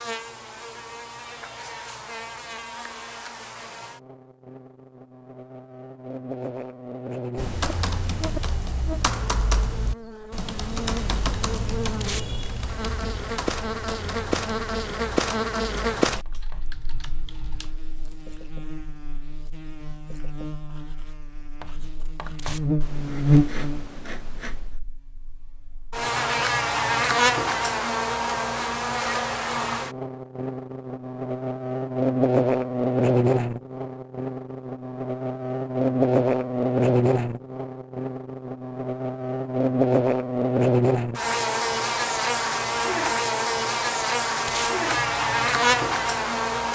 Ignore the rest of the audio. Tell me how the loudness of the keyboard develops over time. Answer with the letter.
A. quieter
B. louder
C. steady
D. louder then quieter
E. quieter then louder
A.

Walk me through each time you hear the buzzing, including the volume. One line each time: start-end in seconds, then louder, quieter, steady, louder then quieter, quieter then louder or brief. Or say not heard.
0.0-46.7 louder.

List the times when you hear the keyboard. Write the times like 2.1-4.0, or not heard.
7.3-17.8.